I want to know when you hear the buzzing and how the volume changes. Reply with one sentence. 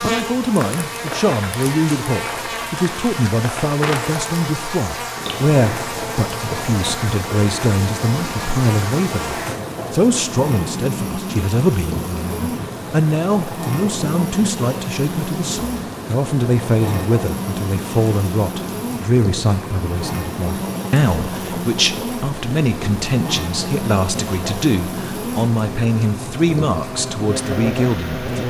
You can hear the buzzing from 0.0 to 28.4 s, at a steady volume.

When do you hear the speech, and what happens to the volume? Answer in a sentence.
You can hear the speech from 0.0 to 28.4 s, at a steady volume.